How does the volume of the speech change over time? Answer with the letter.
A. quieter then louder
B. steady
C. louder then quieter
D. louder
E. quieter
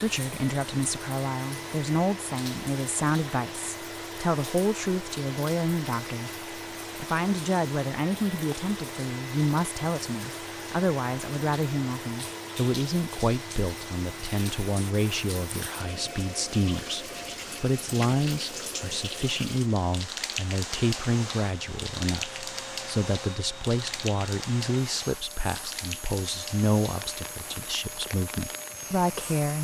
B.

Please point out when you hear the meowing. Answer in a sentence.
The meowing can't be heard in this clip.